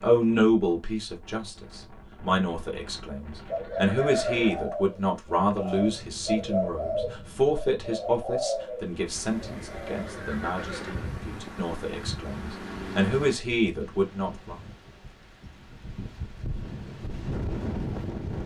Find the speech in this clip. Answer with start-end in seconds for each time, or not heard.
0.0-14.6.